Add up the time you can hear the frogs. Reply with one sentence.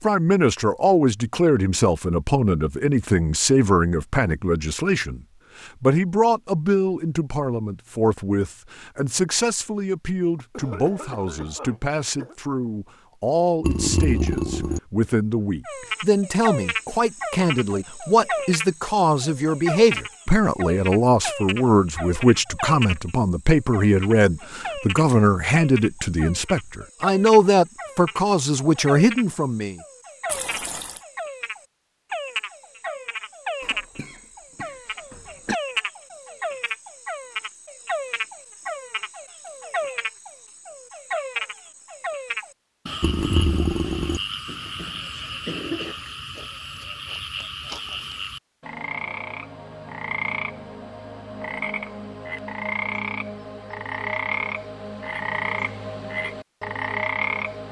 The frogs can be heard for 42 seconds in total.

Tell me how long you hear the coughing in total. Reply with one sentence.
You can hear the coughing for 5 seconds altogether.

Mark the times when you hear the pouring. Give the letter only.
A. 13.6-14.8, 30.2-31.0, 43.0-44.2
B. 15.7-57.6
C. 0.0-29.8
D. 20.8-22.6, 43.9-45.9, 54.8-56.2
A.